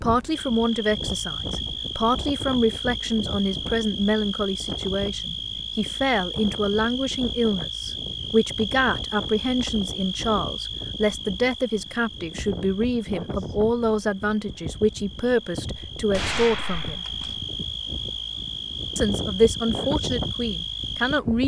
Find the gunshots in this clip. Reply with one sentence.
The gunshots can be heard from 16.1 to 17.4 s.